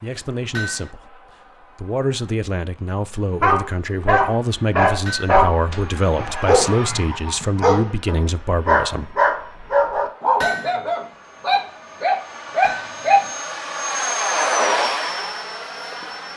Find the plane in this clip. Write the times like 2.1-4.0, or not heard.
0.0-16.3.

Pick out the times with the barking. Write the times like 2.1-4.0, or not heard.
3.4-13.2.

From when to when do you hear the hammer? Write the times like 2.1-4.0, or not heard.
0.5-0.9, 5.0-5.5, 10.4-10.8, 12.6-13.0.